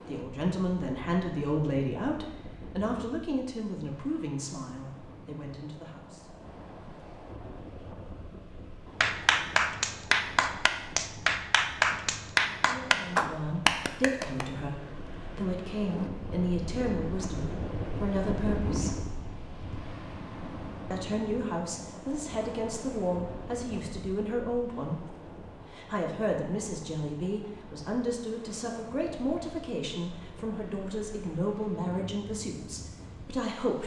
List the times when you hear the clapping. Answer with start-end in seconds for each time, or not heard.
9.0-14.4.